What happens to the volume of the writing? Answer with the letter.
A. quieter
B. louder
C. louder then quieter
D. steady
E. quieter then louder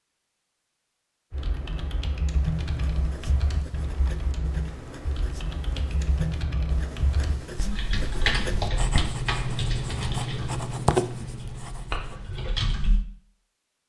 B.